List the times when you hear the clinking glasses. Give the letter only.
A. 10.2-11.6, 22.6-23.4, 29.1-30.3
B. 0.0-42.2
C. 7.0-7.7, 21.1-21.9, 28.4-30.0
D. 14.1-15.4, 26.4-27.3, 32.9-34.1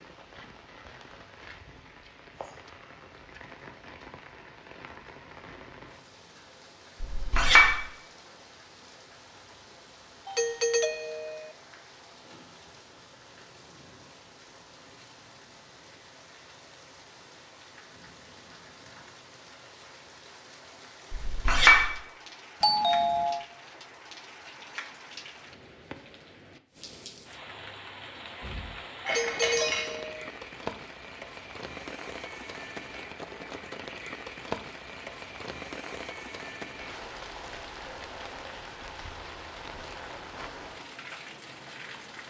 C.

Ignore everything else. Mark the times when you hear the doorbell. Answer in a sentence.
The doorbell can be heard from 10.2 to 11.6 s, from 22.6 to 23.4 s and from 29.1 to 30.3 s.